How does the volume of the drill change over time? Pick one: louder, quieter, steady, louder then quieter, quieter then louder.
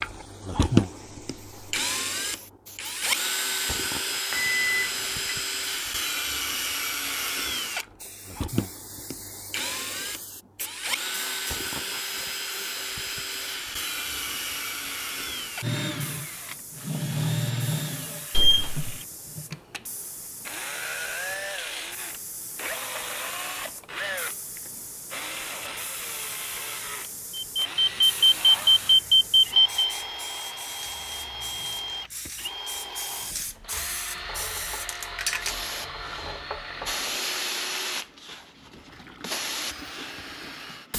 quieter.